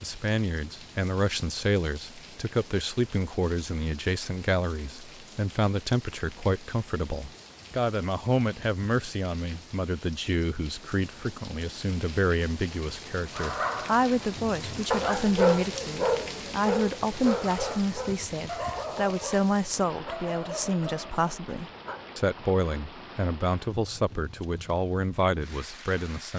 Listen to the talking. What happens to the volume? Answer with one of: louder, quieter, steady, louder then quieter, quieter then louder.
steady.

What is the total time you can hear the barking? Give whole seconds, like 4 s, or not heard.
9 s.